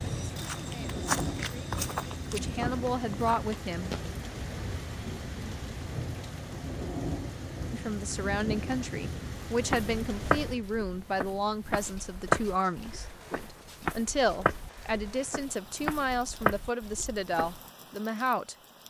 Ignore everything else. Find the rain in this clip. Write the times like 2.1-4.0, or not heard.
0.0-18.8.